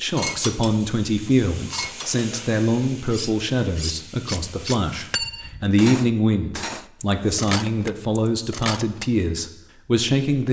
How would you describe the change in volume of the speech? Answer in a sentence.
The volume of the speech stays about the same.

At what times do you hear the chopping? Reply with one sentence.
You can't hear the chopping here.